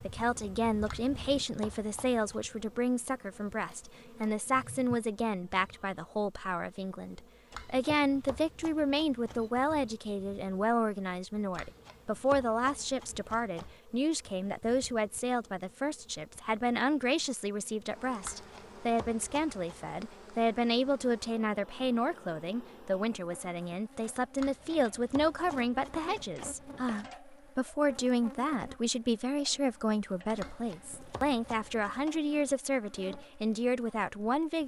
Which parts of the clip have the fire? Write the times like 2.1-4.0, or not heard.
not heard.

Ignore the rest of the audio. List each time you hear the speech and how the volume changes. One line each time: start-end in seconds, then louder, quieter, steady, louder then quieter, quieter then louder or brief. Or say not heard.
0.0-34.6 steady.